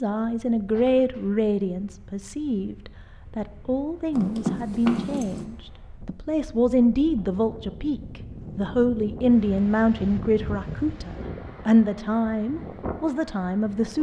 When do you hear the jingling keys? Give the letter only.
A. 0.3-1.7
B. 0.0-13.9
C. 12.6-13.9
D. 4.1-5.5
D.